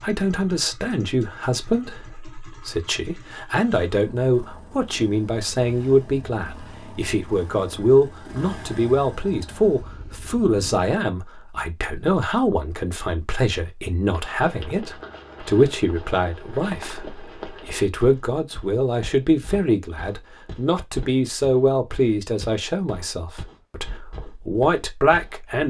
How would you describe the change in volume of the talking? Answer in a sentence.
The volume of the talking stays about the same.